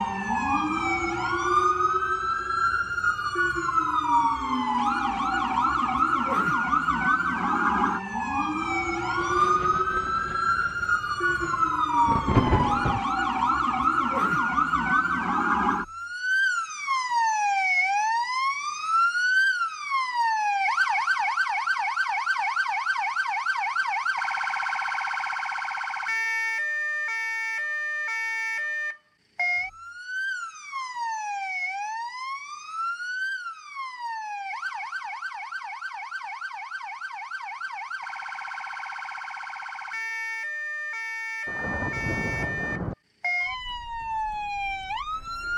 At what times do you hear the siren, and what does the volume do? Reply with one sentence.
You can hear the siren from 0.0 to 45.5 s, getting quieter.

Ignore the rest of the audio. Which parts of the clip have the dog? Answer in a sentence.
The dog can't be heard in this clip.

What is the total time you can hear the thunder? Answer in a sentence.
The thunder can be heard for 5 seconds in total.